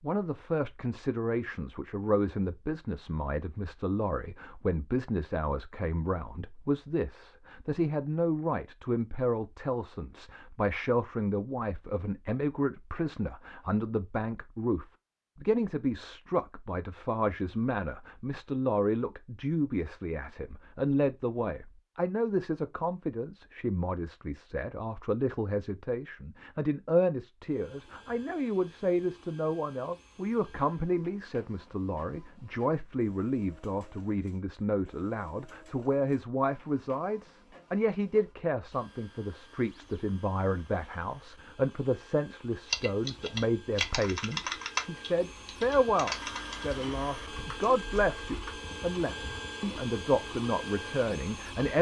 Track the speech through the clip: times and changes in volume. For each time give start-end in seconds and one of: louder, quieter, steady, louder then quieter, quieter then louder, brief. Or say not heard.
0.0-51.7 steady.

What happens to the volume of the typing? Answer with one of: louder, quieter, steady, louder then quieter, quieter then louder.
quieter.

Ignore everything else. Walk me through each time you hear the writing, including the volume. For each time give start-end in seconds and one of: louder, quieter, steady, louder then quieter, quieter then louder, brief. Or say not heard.
not heard.